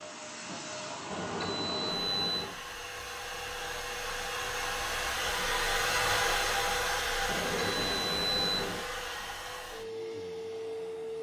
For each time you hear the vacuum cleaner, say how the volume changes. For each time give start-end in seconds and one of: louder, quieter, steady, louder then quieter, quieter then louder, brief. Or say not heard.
0.0-11.1 louder then quieter.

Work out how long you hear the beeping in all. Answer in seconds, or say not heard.
3 s.